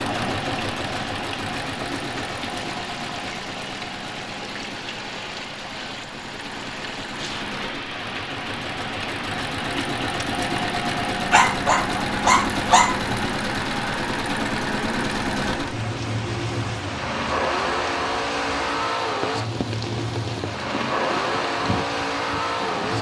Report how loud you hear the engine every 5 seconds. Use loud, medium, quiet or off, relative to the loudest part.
medium, medium, loud, loud, loud.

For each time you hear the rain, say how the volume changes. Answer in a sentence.
The rain can be heard from 0.0 to 22.9 s, at a steady volume.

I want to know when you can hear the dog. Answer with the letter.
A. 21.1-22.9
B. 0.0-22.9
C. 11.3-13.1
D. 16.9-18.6
C.